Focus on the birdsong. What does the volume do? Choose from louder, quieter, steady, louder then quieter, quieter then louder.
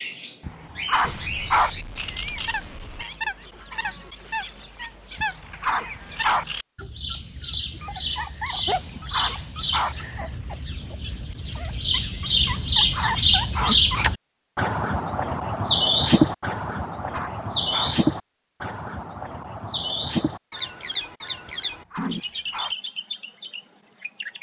louder then quieter.